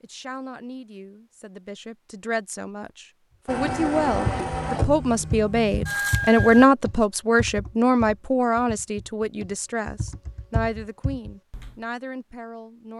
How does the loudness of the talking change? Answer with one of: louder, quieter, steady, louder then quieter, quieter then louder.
louder then quieter.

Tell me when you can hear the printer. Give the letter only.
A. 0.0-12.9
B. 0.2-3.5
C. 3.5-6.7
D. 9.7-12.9
C.